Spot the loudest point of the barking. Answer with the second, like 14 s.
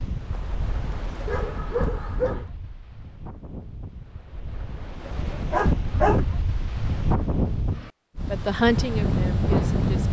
6 s.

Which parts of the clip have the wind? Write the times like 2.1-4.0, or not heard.
0.0-10.0.